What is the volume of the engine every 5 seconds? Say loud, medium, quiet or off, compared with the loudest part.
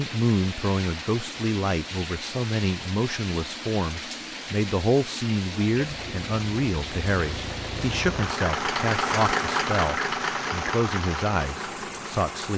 off, loud, loud.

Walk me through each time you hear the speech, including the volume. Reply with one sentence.
You can hear the speech from 0.0 to 12.5 s, at a steady volume.